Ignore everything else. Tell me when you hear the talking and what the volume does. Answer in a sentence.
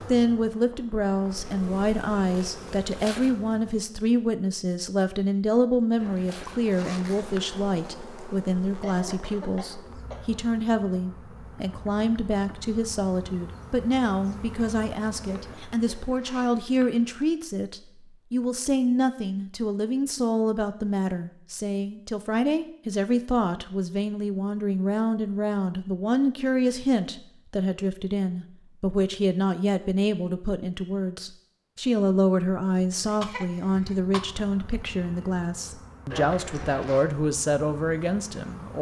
You can hear the talking from 0.1 to 38.7 s, at a steady volume.